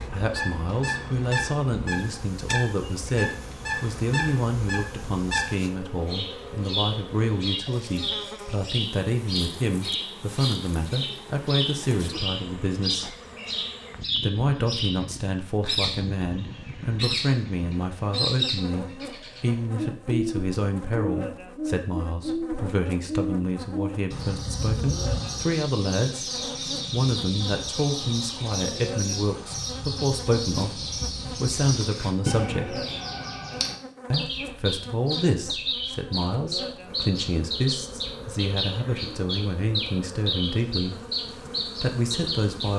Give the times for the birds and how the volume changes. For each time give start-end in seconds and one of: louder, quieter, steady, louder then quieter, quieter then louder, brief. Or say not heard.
0.0-42.7 steady.